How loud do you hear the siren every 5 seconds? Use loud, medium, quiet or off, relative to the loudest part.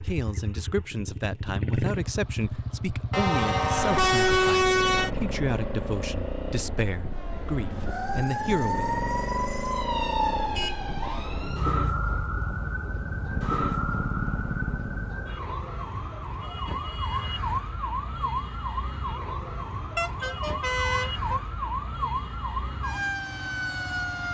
off, loud, loud, loud, loud.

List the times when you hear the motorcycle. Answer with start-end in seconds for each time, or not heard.
0.0-15.2.